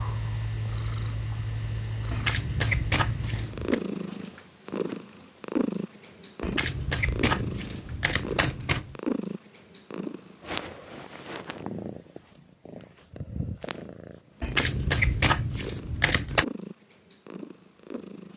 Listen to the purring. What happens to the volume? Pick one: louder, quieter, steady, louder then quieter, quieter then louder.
quieter.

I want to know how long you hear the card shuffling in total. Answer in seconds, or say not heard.
6 s.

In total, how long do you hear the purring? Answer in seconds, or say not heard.
18 s.